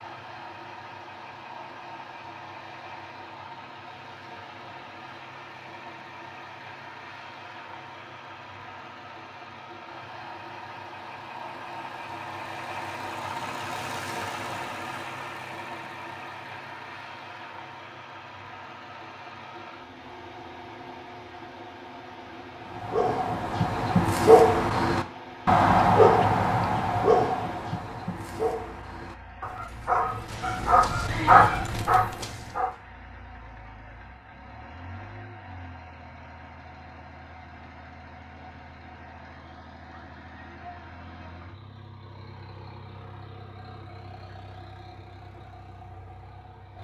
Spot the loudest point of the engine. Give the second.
14 s.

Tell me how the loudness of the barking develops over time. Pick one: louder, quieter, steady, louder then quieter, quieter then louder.
quieter then louder.